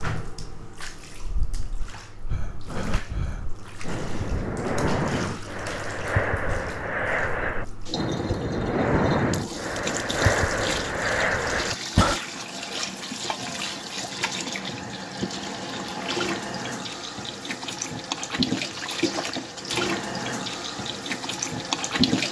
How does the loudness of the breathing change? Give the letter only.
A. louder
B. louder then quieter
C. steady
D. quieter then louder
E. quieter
A.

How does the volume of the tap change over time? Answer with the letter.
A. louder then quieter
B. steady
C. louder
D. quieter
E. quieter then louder
C.